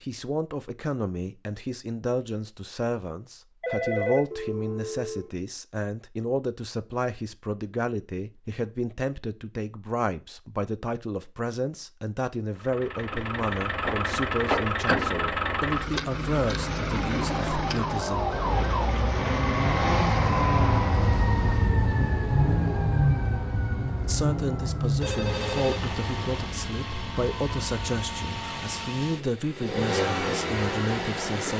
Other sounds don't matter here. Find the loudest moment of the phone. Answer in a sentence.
The volume of the phone peaks at 4 seconds.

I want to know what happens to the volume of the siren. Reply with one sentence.
The volume of the siren goes down.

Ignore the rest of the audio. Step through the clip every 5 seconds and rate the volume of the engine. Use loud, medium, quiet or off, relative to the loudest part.
off, off, loud, loud, loud, medium, loud.